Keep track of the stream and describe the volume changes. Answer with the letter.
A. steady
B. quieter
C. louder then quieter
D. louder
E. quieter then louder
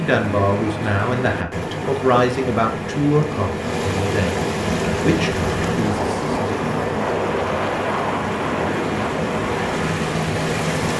A.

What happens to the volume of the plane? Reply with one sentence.
The loudness of the plane stays about the same.